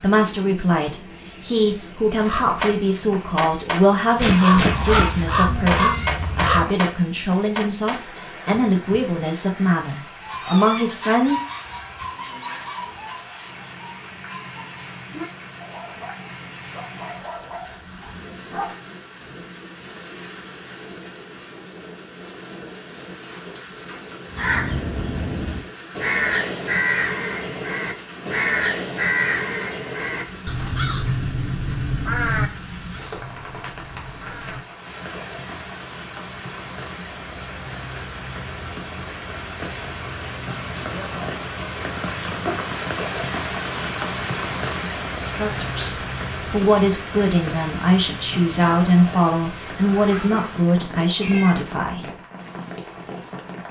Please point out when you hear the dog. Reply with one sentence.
The dog can be heard from 10.2 to 18.8 s.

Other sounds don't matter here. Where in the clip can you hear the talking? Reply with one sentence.
You can hear the talking from 0.0 to 11.4 s and from 45.4 to 52.1 s.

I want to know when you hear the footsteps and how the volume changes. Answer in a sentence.
You can't hear the footsteps here.